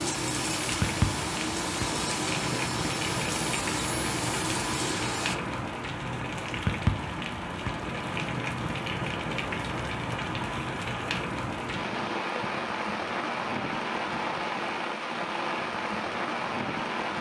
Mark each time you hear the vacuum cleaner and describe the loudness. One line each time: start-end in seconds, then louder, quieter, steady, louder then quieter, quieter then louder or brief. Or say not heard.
0.0-5.3 steady.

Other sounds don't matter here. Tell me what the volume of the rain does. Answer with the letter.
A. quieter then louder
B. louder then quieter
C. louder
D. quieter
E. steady
E.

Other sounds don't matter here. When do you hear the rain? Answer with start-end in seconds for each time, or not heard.
0.0-17.1.